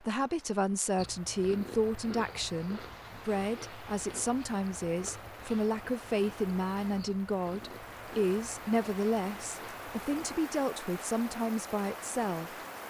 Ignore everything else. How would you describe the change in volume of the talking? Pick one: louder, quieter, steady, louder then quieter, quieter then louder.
steady.